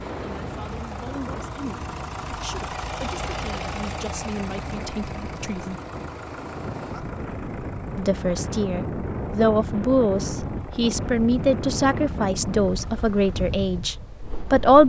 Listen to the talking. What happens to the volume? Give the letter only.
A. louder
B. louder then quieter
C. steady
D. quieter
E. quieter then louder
A.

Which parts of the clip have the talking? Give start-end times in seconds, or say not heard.
0.2-5.8, 8.0-14.8.